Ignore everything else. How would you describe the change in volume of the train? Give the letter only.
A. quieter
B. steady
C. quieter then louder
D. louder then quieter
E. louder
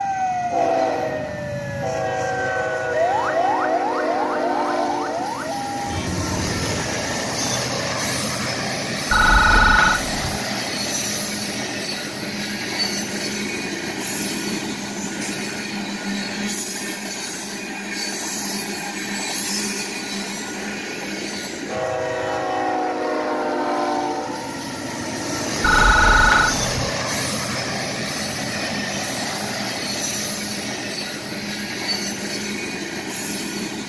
B.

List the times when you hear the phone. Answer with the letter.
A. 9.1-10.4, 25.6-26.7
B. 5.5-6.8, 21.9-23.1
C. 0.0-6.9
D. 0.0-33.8
A.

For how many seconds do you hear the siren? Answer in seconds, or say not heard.
7 s.